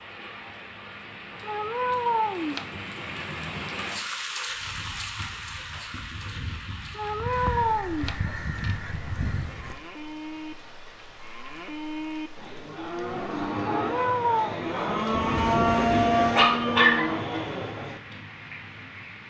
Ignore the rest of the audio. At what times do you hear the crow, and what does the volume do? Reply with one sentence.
You can hear the crow from 4.5 to 9.8 s, getting louder.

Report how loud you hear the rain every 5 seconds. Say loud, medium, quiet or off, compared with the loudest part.
loud, medium, medium, medium.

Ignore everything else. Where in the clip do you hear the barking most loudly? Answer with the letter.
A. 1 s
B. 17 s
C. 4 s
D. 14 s
B.